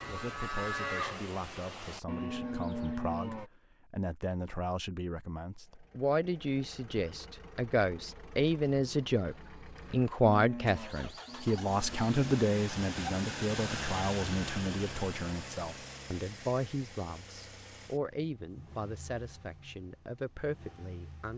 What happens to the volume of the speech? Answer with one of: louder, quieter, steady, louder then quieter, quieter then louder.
louder then quieter.